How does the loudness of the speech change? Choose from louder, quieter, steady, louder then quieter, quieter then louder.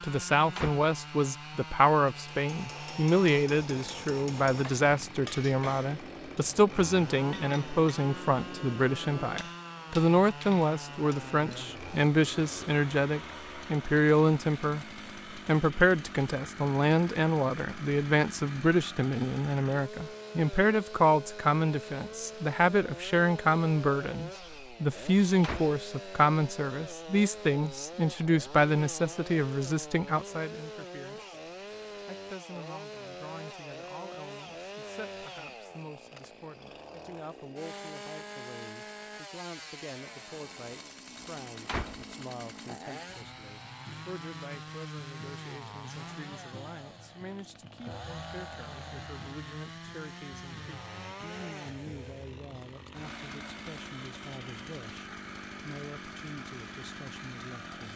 quieter.